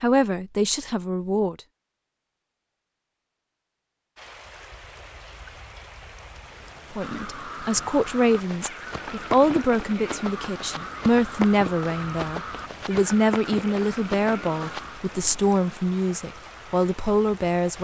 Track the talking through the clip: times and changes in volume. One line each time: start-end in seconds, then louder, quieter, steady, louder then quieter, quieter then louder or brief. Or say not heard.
0.0-1.6 brief
6.9-17.8 steady.